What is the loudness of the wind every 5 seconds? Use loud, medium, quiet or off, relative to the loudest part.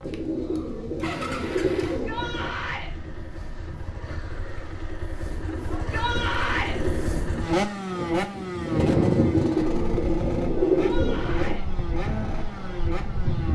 quiet, loud, medium.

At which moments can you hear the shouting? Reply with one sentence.
You can hear the shouting from 1.9 to 2.9 s, from 5.7 to 6.8 s and from 10.8 to 11.7 s.